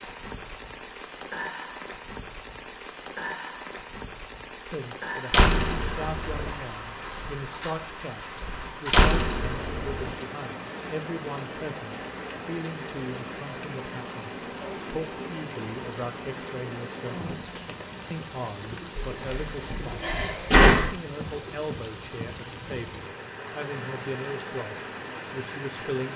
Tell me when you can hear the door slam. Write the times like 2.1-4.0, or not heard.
5.3-6.5, 8.9-10.1, 18.9-20.9.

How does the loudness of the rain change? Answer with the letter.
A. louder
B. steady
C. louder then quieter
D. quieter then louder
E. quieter
B.